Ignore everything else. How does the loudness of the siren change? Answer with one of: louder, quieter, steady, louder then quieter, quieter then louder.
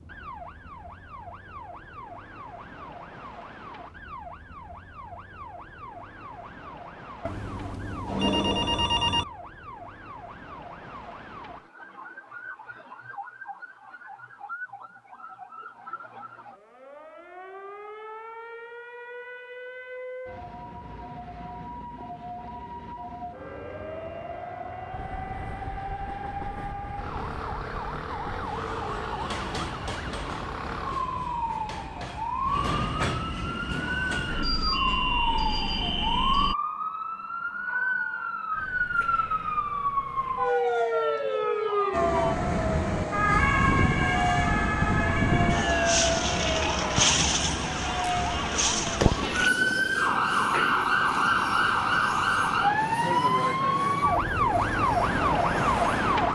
louder.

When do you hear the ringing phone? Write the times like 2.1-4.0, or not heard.
7.2-9.2.